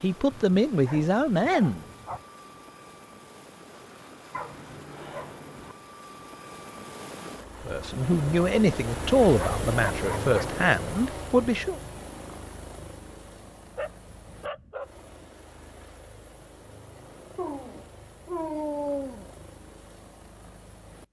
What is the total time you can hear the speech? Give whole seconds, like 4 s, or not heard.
6 s.